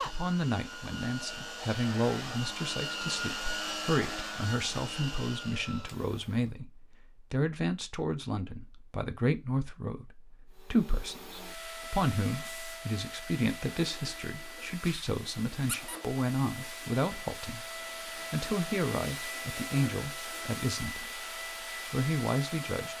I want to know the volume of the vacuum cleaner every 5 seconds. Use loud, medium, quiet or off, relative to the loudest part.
loud, medium, medium, loud, loud.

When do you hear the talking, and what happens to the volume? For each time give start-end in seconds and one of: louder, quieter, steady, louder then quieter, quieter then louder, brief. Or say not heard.
0.1-21.2 steady
21.9-22.9 brief.